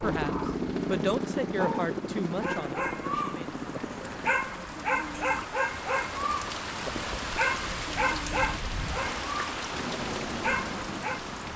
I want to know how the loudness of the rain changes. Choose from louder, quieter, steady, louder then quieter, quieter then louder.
louder.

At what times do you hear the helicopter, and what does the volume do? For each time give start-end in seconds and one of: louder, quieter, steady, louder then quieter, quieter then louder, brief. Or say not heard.
0.0-4.3 quieter
9.7-11.5 brief.